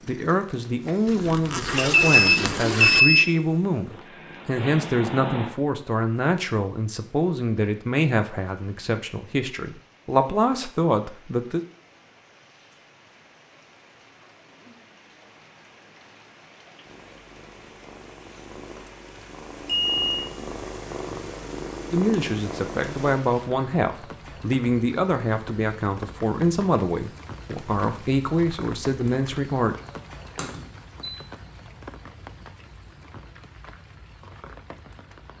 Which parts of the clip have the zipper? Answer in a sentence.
You can hear the zipper from 1.1 to 3.0 s.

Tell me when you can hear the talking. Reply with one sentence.
You can hear the talking from 0.1 to 11.7 s and from 21.9 to 29.8 s.